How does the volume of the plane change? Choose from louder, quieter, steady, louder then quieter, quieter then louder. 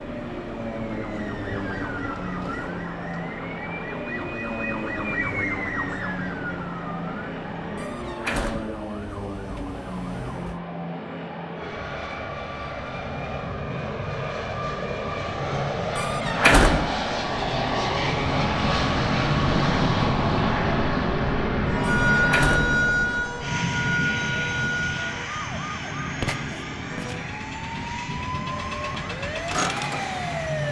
louder then quieter.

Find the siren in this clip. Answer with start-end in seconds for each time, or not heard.
0.0-10.6, 21.6-30.6.